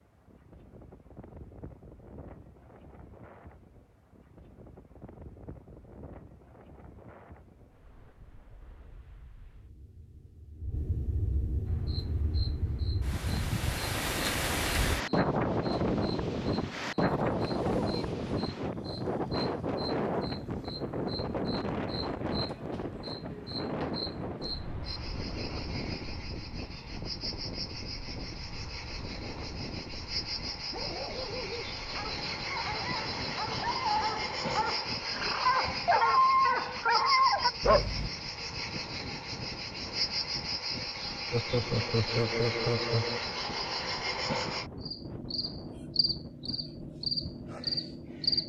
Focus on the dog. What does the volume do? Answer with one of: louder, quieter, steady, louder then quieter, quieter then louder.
louder.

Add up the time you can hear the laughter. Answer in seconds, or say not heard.
3 s.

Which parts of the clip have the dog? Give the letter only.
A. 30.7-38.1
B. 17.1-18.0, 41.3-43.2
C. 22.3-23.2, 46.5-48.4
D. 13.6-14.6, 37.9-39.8
A.